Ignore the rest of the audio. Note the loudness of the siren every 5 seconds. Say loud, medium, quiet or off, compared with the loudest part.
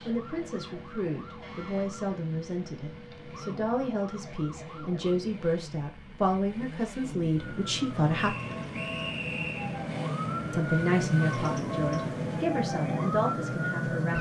quiet, medium, loud.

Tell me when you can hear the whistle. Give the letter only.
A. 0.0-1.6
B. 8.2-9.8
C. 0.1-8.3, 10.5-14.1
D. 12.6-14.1
B.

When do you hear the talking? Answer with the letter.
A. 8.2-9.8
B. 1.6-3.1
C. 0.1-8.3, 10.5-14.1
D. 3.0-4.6
C.